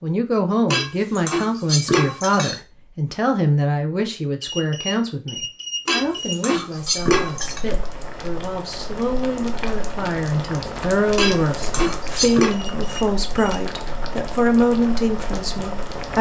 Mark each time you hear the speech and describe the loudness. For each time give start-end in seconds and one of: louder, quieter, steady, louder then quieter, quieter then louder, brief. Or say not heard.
0.0-16.1 quieter then louder.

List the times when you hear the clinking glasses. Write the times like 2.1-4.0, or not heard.
0.7-2.6, 5.8-7.6, 11.2-12.6.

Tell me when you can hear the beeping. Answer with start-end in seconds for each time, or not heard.
4.4-6.4, 12.5-13.6.